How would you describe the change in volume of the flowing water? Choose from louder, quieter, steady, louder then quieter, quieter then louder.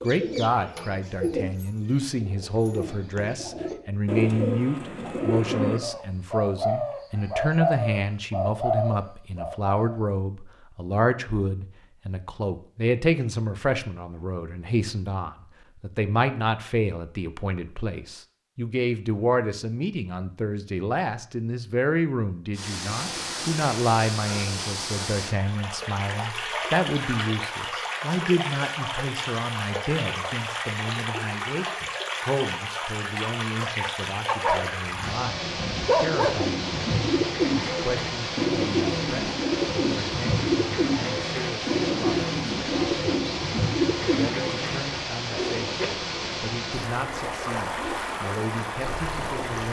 steady.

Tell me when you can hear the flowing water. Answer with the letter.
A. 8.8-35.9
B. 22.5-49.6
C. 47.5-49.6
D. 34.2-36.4
B.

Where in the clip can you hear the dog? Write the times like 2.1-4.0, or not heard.
34.2-36.4.